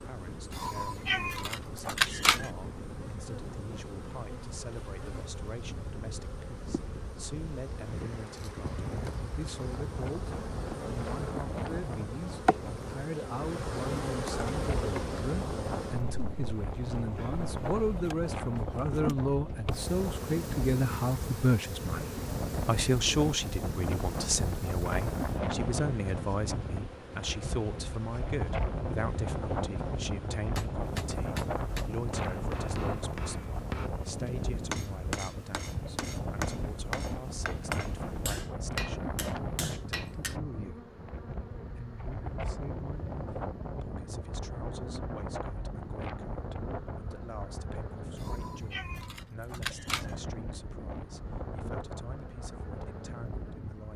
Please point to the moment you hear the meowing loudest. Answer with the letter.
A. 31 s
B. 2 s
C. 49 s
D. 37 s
B.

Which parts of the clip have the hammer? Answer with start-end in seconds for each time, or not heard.
30.6-40.4.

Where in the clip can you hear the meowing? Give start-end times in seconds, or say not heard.
0.5-2.5, 48.1-50.1.